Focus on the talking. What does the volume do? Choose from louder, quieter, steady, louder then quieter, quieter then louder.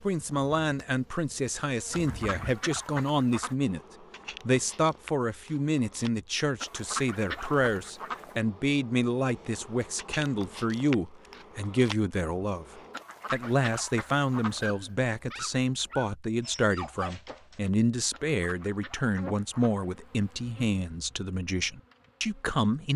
steady.